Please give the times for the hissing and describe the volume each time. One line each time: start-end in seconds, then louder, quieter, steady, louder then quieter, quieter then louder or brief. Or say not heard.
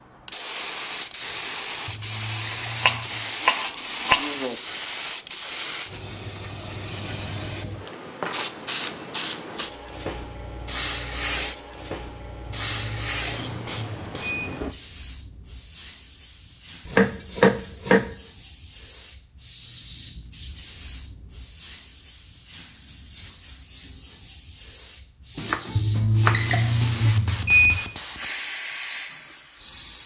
0.1-30.0 quieter then louder.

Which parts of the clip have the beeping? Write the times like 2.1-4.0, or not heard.
1.9-3.2, 12.4-14.5, 25.8-27.8.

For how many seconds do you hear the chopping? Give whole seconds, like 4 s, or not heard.
5 s.